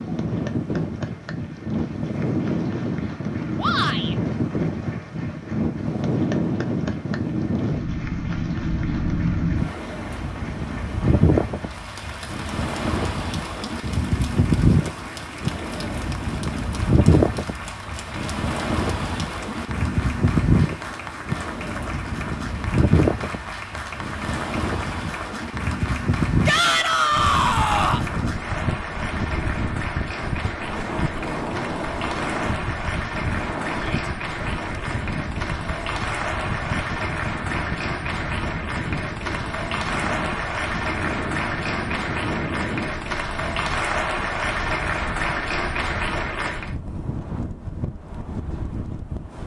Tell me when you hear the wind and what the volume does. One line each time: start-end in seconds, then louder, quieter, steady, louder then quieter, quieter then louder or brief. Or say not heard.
0.0-49.4 quieter.